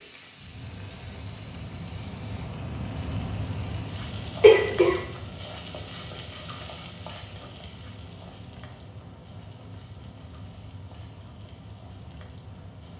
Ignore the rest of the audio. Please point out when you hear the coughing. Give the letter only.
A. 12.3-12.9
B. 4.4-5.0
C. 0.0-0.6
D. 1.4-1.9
B.